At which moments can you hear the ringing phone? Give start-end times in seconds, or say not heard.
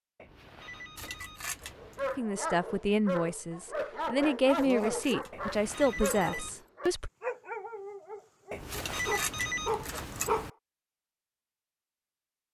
0.1-2.2, 5.3-6.6, 8.5-10.5.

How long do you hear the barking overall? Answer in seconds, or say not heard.
9 s.